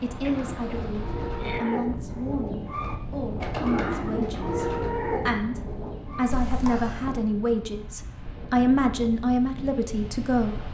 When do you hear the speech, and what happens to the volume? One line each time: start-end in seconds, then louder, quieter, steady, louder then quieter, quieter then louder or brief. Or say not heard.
0.0-10.7 louder.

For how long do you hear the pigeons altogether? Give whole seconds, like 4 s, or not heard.
7 s.